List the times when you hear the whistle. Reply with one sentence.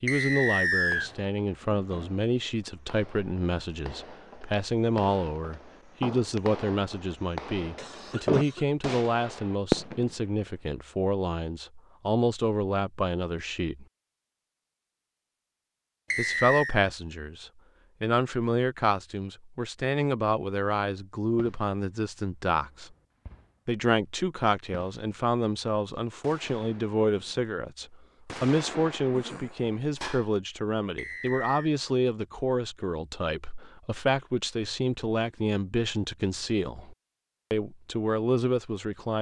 The whistle can be heard from 0.1 to 1.1 s, from 16.1 to 16.8 s and from 30.9 to 31.7 s.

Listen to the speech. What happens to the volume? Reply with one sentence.
The loudness of the speech stays about the same.